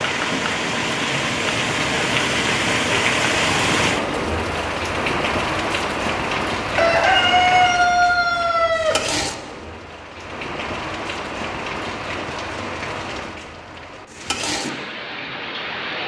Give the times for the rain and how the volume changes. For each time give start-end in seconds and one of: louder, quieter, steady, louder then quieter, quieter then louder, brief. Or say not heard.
0.0-16.0 quieter.